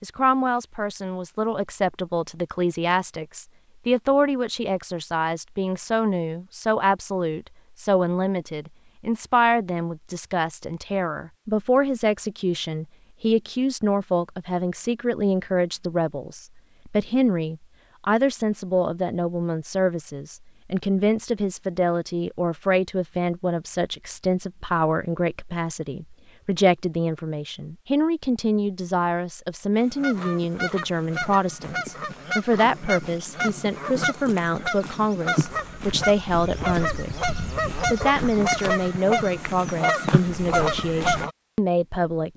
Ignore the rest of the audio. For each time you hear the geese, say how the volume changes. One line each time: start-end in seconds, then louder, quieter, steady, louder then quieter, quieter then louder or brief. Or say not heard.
29.8-41.3 louder.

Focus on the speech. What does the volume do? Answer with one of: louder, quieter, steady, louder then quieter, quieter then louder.
steady.